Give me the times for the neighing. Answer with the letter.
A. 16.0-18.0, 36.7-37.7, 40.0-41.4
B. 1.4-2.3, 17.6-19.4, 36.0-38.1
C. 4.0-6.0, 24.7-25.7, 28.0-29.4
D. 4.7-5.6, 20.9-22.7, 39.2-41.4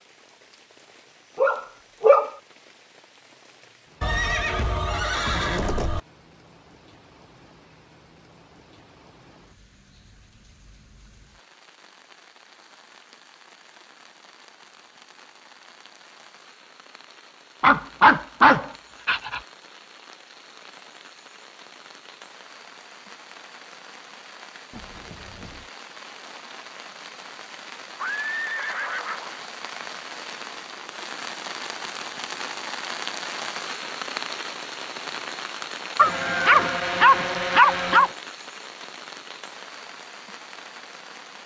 C.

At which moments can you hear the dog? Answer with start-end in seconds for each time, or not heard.
1.4-2.3, 17.6-19.4, 36.0-38.1.